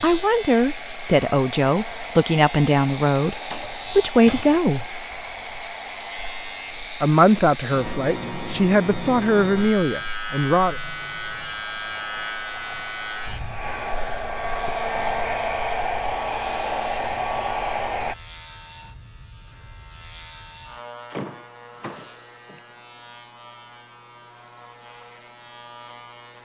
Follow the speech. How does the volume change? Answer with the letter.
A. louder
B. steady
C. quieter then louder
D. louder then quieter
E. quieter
B.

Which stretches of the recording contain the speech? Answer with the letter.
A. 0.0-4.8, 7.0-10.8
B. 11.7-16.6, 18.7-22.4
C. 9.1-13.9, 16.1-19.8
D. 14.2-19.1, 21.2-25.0
A.